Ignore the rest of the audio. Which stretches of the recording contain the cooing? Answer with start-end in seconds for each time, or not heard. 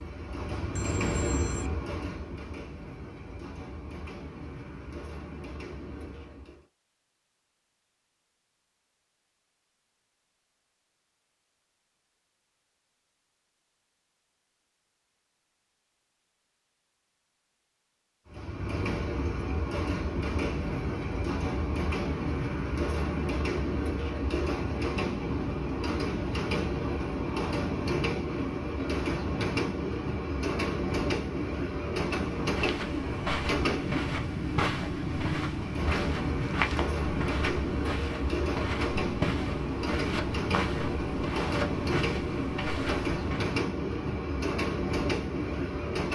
not heard.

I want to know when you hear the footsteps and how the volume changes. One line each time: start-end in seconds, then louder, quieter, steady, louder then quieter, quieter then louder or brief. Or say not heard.
32.4-43.6 steady.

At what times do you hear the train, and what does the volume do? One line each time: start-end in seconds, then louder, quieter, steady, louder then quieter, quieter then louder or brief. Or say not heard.
0.0-6.7 quieter
18.2-46.1 steady.